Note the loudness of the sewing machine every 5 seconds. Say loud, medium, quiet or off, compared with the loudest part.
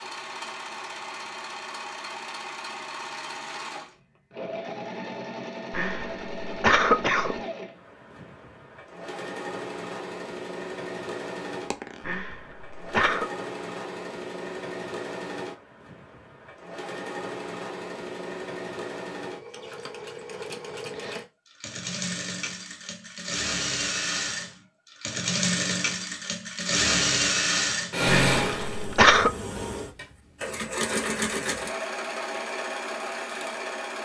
medium, medium, medium, medium, medium, loud, medium.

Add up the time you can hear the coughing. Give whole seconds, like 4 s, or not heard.
4 s.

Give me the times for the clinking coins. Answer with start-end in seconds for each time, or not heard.
11.6-12.8.